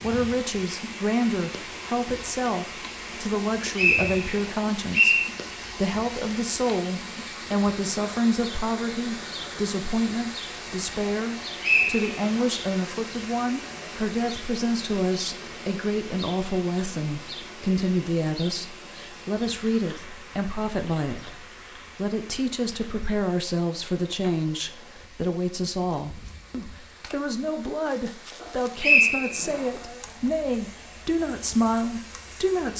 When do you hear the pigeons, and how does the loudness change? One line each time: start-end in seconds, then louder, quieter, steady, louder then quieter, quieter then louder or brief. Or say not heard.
not heard.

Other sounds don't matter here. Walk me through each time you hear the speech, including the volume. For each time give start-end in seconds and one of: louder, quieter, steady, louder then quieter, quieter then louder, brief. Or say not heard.
0.0-32.7 steady.